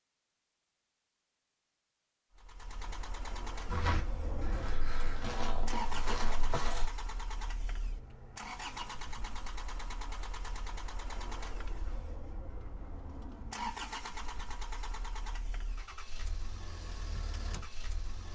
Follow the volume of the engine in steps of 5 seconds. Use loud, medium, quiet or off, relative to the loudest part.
loud, loud, loud, medium.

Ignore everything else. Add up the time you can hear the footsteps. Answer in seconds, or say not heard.
3 s.